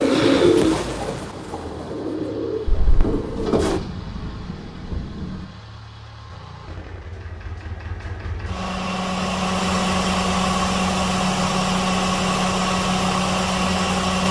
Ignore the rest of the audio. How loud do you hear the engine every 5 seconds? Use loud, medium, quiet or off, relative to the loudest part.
quiet, medium, loud.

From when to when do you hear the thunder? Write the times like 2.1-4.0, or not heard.
2.6-5.5.